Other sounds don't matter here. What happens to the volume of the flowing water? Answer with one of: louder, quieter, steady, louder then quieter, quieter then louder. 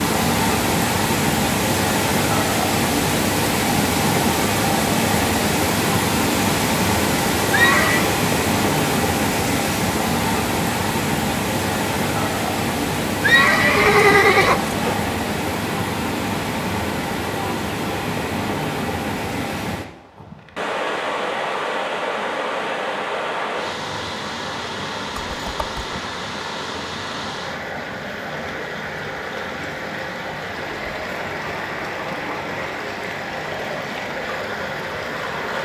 quieter.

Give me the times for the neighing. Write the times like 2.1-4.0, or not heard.
7.5-8.1, 13.2-14.9, 25.2-26.0.